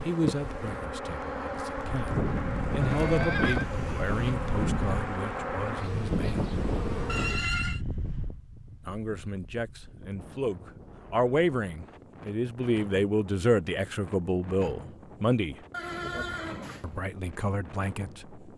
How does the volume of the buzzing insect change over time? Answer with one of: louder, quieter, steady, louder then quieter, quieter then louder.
steady.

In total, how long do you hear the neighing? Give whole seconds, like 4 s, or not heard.
3 s.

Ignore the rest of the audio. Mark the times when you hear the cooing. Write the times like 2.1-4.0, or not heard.
not heard.